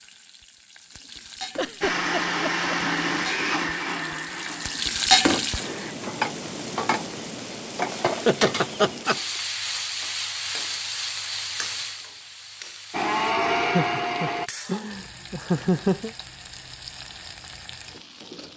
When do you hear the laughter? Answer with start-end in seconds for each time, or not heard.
1.6-2.8, 8.1-9.2, 13.6-16.1.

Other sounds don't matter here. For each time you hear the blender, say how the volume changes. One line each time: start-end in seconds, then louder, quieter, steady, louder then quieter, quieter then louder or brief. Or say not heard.
1.8-6.0 quieter
12.9-14.5 brief.